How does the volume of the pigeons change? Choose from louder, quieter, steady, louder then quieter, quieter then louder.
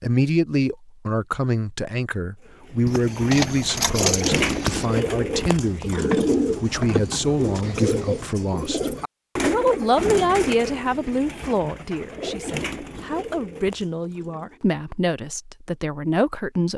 quieter.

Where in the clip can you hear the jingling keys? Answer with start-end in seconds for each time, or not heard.
2.9-4.9.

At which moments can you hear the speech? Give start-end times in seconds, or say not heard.
0.0-16.7.